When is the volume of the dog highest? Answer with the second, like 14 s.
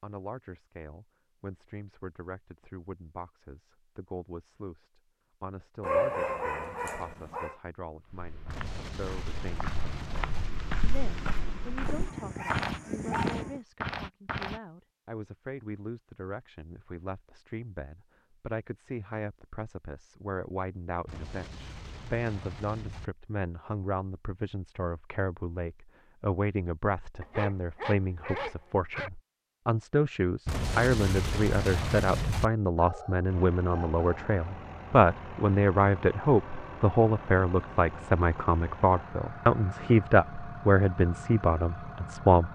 6 s.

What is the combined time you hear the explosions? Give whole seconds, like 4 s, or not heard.
6 s.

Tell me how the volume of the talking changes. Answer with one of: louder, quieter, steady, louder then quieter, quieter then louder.
louder.